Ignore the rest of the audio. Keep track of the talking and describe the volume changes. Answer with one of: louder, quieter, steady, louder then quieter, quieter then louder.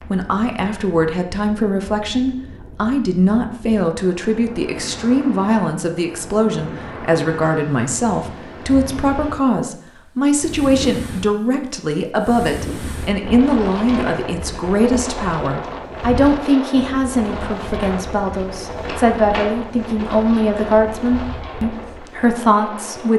steady.